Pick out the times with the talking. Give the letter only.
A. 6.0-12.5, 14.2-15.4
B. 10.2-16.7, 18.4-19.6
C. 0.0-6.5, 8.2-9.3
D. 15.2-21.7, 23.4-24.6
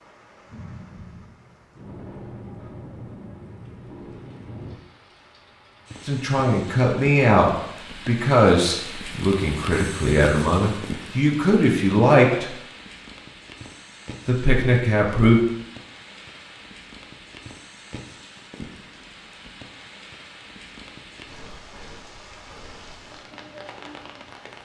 A.